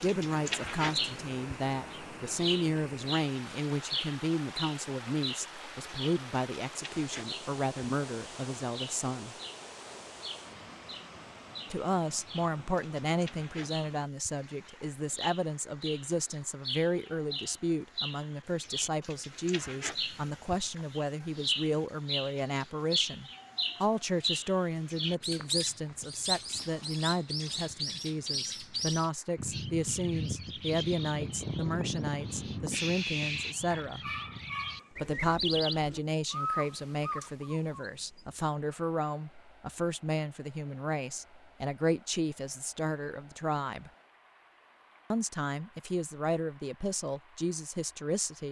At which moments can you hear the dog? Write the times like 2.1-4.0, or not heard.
33.6-35.1.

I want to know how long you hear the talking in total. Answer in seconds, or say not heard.
44 s.